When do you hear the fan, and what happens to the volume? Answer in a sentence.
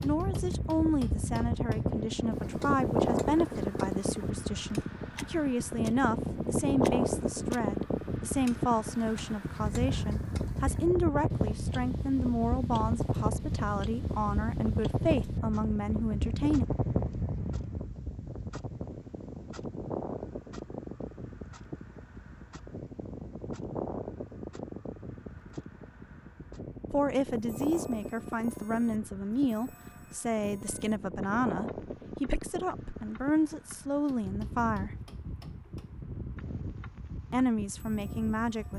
You can hear the fan from 0.0 to 38.7 s, getting quieter.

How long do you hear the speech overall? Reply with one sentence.
The speech can be heard for 26 seconds in total.